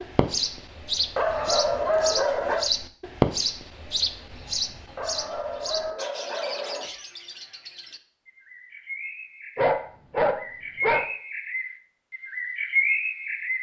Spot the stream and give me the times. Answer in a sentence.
The stream can't be heard in this clip.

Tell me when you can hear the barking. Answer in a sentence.
The barking can be heard from 1.1 to 2.7 s, from 5.0 to 6.9 s and from 9.6 to 11.1 s.